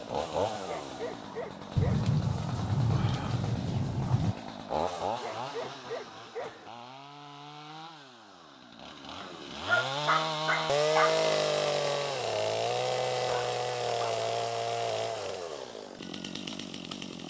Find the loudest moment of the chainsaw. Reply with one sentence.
The loudest moment of the chainsaw is at 11 seconds.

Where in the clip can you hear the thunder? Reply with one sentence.
The thunder can be heard from 1.8 to 4.3 s.